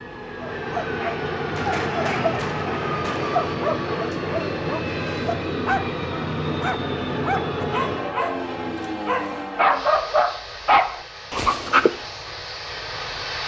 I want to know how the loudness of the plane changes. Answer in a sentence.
The volume of the plane goes down.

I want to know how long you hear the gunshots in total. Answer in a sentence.
The gunshots can be heard for 2 seconds in total.